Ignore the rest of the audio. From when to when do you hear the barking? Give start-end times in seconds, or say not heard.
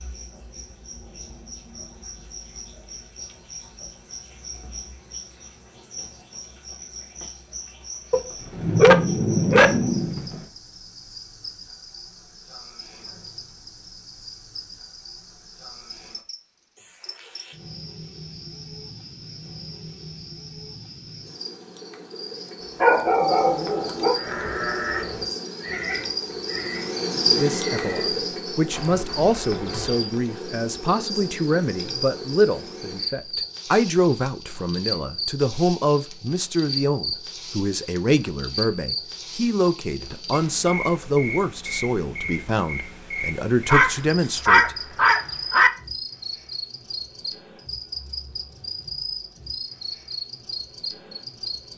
8.1-10.4, 22.8-24.1, 43.6-45.7.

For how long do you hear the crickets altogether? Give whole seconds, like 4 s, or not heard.
52 s.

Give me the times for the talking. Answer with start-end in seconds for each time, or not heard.
27.1-44.8.